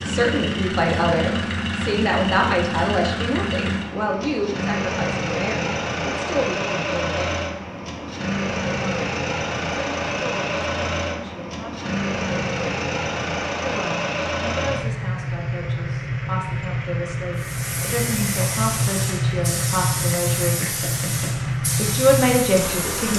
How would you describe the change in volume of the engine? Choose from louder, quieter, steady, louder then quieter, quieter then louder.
steady.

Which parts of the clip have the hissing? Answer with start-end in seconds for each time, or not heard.
17.4-23.1.